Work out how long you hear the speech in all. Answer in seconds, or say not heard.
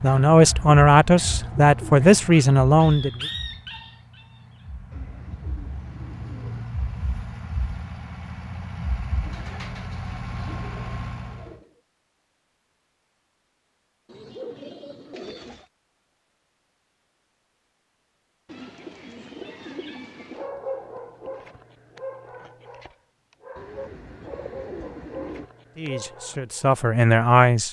5 s.